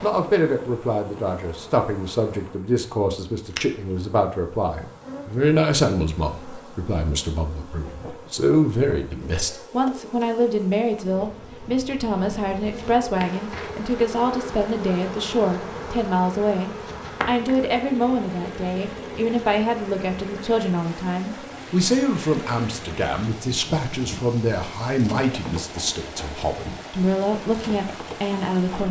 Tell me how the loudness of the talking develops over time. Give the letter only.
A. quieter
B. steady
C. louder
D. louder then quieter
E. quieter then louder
B.